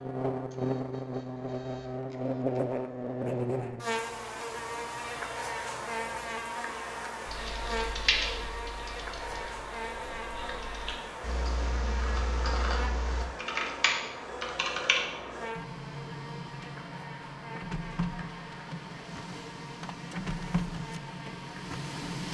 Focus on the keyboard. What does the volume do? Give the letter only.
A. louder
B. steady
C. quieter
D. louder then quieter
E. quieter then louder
E.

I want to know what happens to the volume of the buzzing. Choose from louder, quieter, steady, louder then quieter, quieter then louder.
quieter.